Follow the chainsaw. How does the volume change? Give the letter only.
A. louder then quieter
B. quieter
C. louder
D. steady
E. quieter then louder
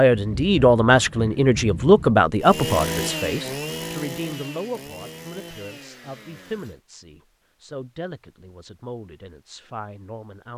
B.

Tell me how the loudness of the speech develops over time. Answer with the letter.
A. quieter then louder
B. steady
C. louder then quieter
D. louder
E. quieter
E.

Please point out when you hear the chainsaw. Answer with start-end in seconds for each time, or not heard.
2.4-6.8.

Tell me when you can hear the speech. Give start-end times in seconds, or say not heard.
0.0-10.5.